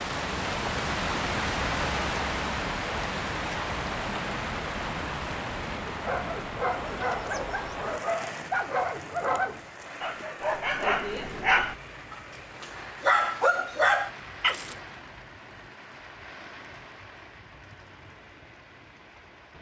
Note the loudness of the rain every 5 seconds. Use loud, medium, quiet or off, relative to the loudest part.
loud, medium, quiet, quiet.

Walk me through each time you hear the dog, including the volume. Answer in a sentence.
The dog can be heard from 5.8 to 14.8 s, getting louder.